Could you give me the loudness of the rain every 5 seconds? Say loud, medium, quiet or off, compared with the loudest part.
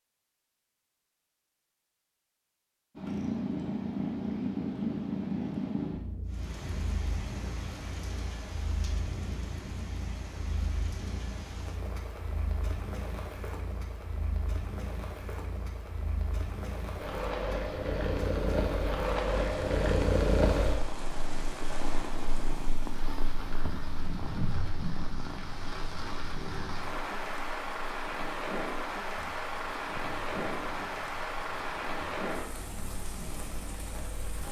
off, medium, medium, medium, medium, loud, loud.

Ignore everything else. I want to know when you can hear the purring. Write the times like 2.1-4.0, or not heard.
3.0-34.4.